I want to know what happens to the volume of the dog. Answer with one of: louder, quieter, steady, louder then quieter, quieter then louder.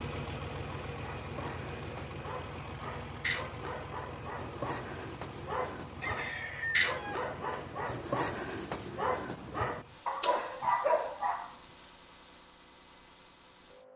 louder.